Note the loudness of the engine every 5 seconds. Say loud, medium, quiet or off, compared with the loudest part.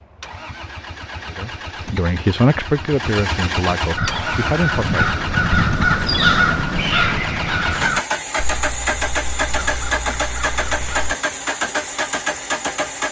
medium, loud, loud.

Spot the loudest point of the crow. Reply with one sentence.
The volume of the crow peaks at 6 seconds.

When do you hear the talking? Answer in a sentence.
You can hear the talking from 1.3 to 5.2 s.